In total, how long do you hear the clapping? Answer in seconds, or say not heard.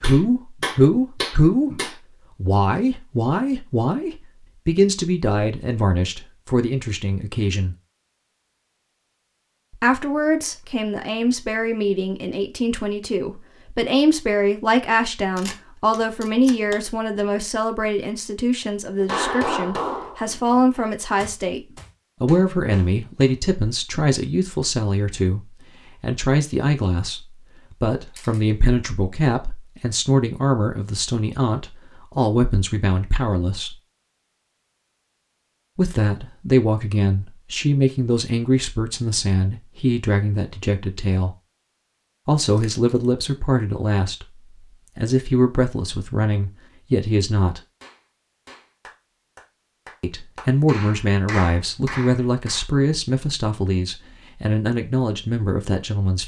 11 s.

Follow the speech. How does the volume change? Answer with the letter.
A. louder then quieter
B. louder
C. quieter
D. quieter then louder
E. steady
E.